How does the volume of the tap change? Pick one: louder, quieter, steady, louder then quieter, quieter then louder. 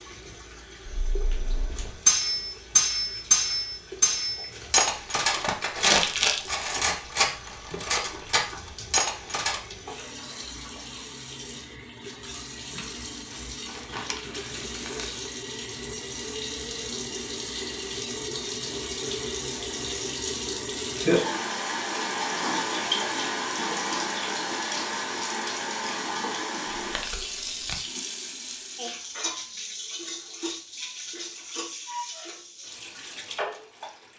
louder then quieter.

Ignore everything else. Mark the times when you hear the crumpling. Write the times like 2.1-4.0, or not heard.
5.8-6.5, 13.3-15.3, 26.8-27.8.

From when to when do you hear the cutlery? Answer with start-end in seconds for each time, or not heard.
0.8-9.6.